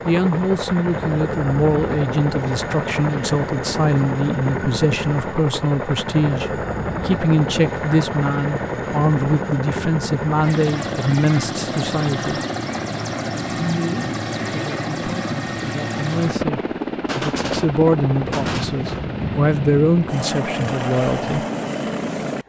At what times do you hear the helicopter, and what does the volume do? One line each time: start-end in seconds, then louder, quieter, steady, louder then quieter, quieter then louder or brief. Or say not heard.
0.0-22.4 steady.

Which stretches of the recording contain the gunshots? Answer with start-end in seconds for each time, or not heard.
17.1-19.1.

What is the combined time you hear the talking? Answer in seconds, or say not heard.
20 s.